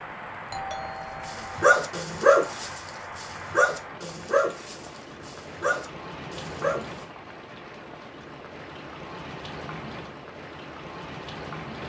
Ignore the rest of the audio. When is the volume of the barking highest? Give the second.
2 s.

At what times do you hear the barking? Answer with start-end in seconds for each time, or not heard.
1.2-7.0.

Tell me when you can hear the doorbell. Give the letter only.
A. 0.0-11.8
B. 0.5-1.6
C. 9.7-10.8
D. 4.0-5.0
B.